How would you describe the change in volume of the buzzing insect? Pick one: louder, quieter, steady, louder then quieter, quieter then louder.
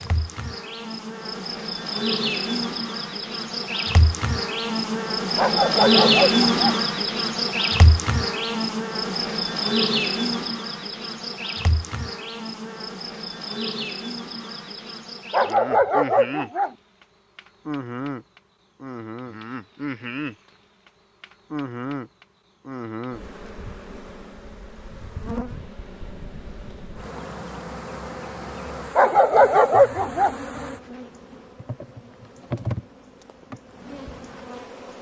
quieter.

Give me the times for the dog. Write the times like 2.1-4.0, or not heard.
5.3-6.8, 15.3-16.7, 28.9-30.4.